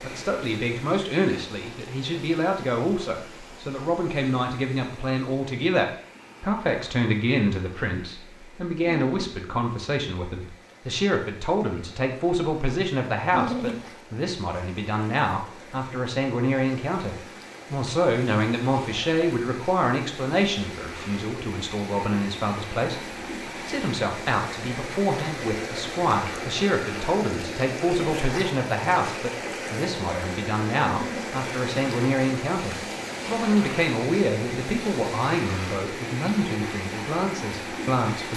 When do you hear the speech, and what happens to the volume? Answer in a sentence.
You can hear the speech from 0.0 to 38.3 s, at a steady volume.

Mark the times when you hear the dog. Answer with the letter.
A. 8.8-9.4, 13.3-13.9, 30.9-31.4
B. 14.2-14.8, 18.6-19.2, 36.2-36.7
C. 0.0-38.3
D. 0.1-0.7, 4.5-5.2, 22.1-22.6
A.